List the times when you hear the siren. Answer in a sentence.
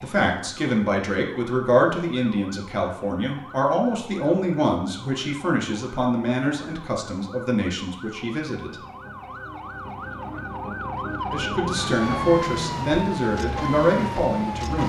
You can hear the siren from 0.0 to 14.8 s.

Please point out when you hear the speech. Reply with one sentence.
The speech can be heard from 0.0 to 8.8 s and from 11.3 to 14.8 s.